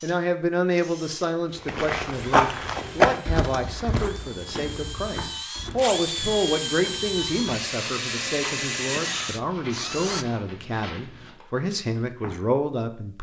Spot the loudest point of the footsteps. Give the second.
3 s.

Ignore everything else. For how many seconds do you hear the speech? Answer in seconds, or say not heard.
13 s.